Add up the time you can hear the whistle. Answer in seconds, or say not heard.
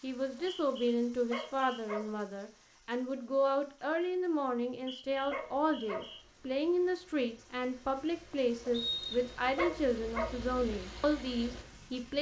4 s.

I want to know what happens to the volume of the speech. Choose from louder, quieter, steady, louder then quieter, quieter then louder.
steady.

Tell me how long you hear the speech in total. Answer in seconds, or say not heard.
12 s.